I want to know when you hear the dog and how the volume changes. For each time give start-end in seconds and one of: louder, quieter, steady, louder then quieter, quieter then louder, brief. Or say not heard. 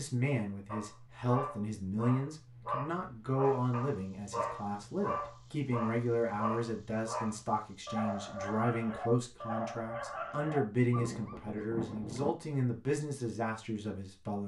0.7-12.3 steady.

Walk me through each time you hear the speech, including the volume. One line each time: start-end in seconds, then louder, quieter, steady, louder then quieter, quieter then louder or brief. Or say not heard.
0.0-14.4 steady.